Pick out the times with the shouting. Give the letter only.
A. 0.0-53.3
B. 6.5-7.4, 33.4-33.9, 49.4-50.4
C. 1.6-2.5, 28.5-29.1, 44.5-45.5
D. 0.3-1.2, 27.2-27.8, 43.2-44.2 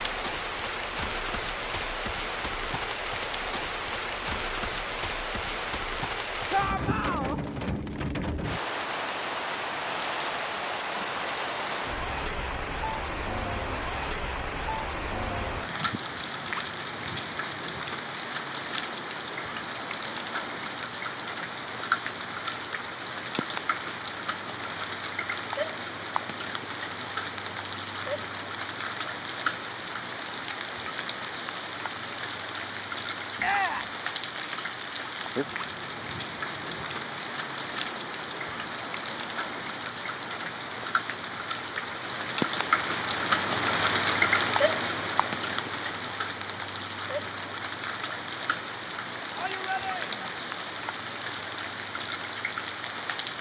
B.